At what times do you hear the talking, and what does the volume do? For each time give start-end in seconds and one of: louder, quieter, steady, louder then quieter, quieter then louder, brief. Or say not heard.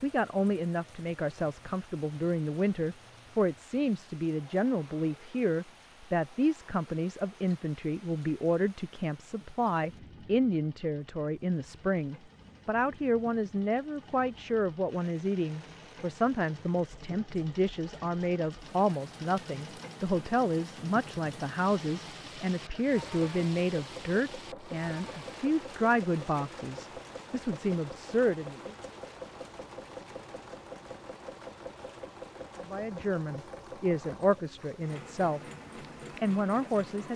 0.0-28.8 steady
32.6-35.4 brief
36.2-37.1 brief.